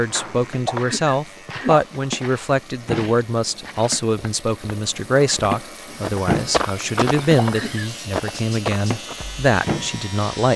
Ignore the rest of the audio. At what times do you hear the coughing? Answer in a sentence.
The coughing can be heard from 0.7 to 1.9 s and from 7.3 to 7.9 s.